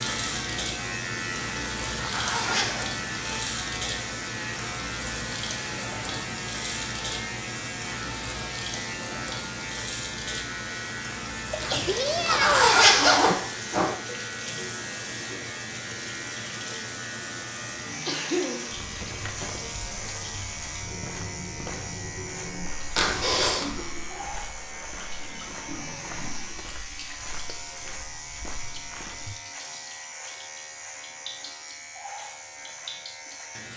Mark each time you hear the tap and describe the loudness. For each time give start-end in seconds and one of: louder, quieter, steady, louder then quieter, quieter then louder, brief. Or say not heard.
0.0-33.7 quieter.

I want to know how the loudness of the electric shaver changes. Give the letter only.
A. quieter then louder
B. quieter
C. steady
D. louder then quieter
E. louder
B.